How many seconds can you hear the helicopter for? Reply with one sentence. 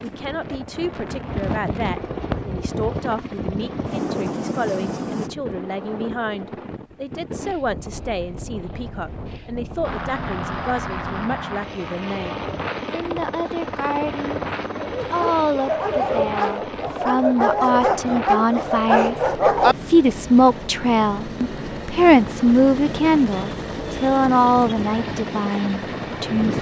The helicopter can be heard for 22 seconds in total.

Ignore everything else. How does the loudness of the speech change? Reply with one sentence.
The volume of the speech goes up.